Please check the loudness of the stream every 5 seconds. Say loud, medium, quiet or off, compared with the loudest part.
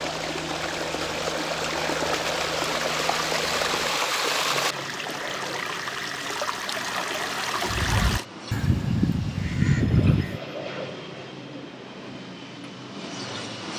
loud, loud, off.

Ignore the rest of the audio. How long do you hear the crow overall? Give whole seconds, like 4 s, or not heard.
3 s.